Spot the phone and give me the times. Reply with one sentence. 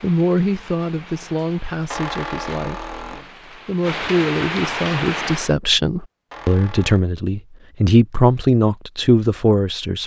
The phone can't be heard in this clip.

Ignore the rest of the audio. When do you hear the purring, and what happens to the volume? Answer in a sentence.
You can't hear the purring here.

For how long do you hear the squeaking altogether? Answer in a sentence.
The squeaking can be heard for 2 seconds in total.